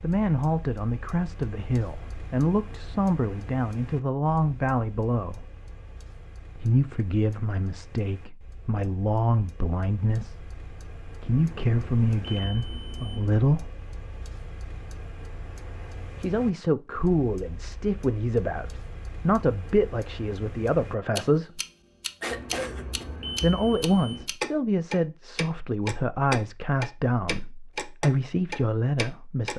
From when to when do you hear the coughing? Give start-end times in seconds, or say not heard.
22.2-23.1.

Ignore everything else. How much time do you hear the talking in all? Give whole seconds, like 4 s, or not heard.
24 s.